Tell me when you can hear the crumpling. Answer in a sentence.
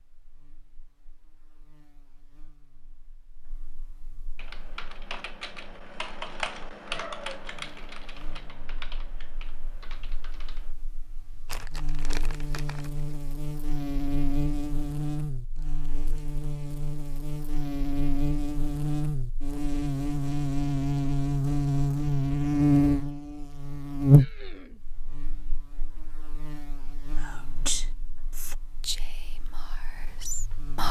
The crumpling can be heard from 11.4 to 13.2 s.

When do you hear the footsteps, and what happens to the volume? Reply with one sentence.
The footsteps can't be heard in this clip.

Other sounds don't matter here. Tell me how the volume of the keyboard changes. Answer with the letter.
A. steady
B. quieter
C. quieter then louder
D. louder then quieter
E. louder
D.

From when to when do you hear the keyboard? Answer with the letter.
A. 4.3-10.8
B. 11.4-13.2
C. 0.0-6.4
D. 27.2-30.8
A.